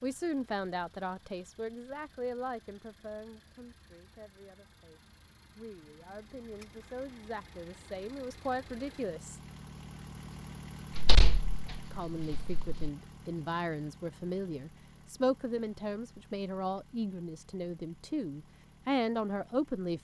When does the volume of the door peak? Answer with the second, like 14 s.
11 s.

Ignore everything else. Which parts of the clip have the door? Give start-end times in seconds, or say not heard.
10.9-12.9.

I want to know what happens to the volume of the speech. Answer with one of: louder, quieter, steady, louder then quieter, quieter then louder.
quieter then louder.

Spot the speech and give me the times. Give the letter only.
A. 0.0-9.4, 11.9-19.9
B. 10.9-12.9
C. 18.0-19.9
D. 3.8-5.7
A.